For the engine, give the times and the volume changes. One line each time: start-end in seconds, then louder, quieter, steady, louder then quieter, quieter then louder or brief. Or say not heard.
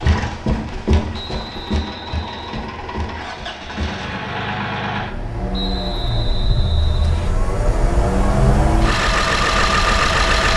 0.0-10.5 louder.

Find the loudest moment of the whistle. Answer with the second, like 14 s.
6 s.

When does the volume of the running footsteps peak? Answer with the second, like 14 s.
1 s.